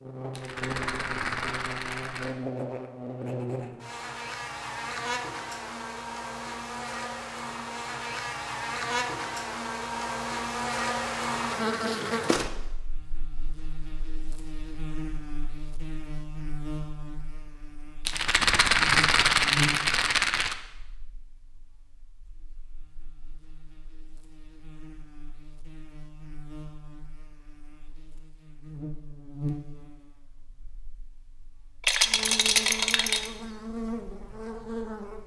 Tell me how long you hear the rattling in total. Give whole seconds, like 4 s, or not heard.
6 s.